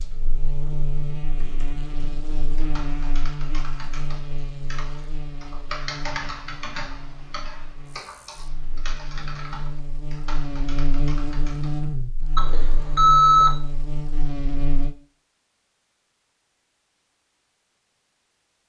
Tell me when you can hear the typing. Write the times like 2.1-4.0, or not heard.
1.4-11.8.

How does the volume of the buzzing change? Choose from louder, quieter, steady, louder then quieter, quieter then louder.
quieter then louder.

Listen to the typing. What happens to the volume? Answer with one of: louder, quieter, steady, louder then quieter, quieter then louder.
louder then quieter.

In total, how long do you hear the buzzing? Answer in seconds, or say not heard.
15 s.